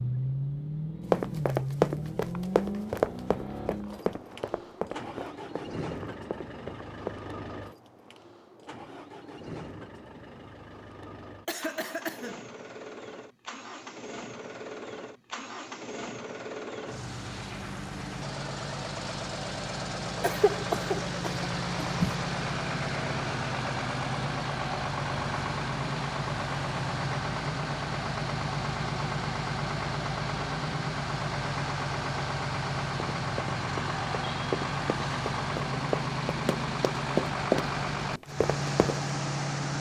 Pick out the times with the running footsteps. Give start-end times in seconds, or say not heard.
1.1-7.2, 33.1-39.0.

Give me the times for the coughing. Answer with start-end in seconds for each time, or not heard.
11.4-12.4, 20.2-22.1.